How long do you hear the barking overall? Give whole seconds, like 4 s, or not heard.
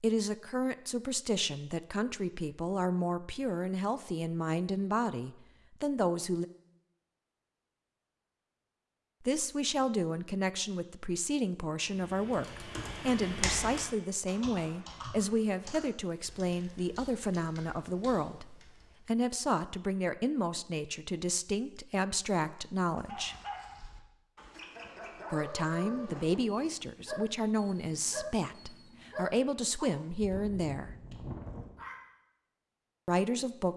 9 s.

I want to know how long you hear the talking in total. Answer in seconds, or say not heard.
27 s.